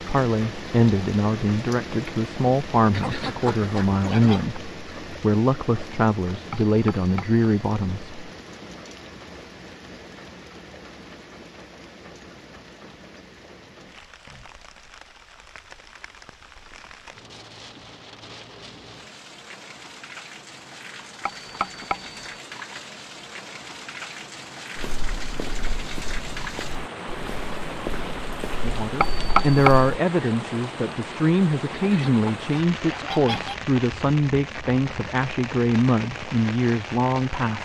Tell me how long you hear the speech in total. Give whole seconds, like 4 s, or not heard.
17 s.